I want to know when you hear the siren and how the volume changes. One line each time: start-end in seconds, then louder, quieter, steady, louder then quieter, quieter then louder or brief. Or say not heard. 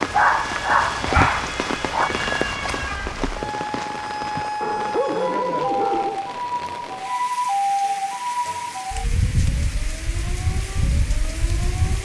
0.2-12.0 louder then quieter.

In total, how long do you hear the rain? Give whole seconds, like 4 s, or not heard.
12 s.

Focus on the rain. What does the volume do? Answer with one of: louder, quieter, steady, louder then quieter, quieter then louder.
quieter.